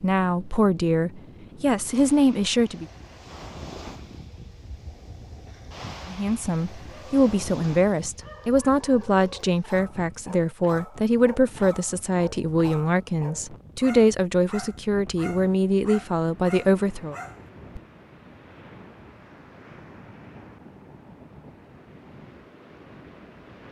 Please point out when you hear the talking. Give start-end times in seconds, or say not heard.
0.0-2.9, 6.0-17.1.